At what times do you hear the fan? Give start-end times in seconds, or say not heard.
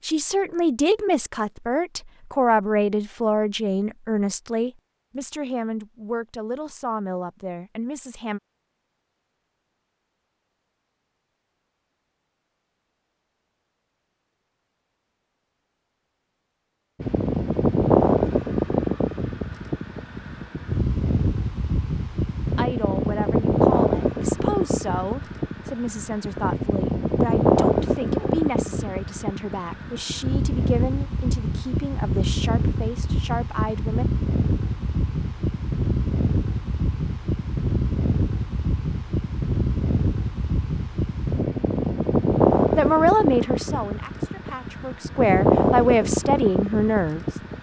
17.0-47.5.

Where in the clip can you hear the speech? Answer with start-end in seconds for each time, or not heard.
0.0-8.4, 22.6-34.0, 42.8-47.2.